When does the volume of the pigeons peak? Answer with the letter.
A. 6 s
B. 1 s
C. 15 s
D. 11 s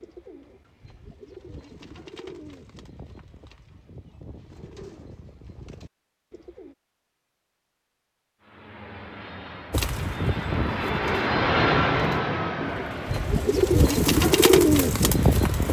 C.